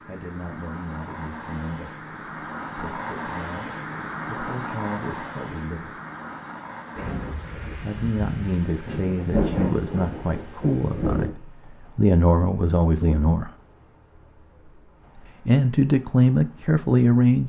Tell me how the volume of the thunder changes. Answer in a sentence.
The volume of the thunder goes up, then down.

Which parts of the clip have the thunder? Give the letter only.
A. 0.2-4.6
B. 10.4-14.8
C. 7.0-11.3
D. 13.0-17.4
C.